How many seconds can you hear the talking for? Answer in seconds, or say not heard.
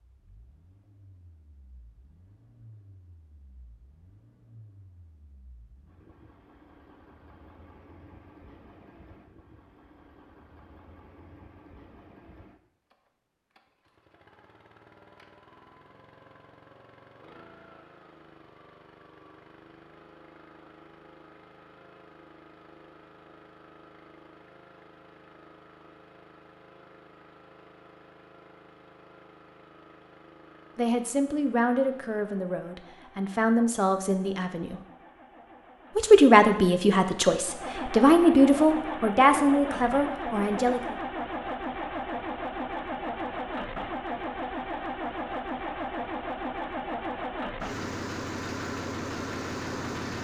9 s.